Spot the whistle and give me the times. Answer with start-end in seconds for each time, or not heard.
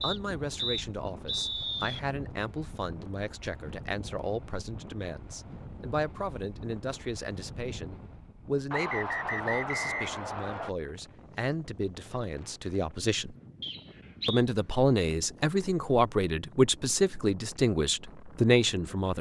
0.0-2.0, 8.7-10.7, 13.6-14.4.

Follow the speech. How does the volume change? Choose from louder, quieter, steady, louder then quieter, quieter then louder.
louder.